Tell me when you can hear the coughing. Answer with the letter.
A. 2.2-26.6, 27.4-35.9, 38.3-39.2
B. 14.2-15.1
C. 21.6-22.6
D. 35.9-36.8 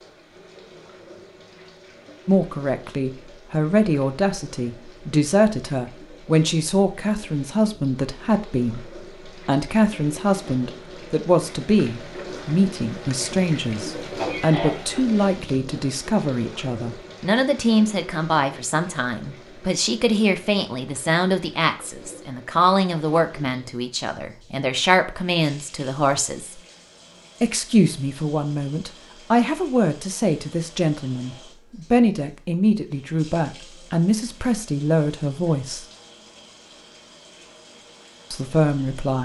B.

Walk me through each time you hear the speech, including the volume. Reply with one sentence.
The speech can be heard from 2.2 to 26.6 s, at a steady volume; from 27.4 to 35.9 s, at a steady volume; and briefly from 38.3 to 39.2 s.